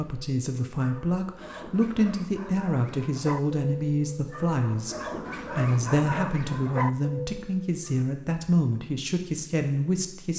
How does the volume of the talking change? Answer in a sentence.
The loudness of the talking stays about the same.